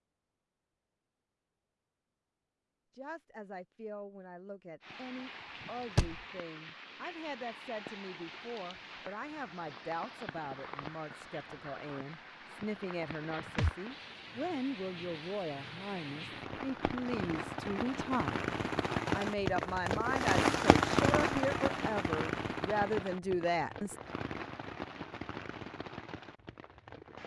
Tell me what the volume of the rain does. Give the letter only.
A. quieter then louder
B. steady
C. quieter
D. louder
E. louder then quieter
E.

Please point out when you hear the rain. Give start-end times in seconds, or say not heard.
4.8-27.2.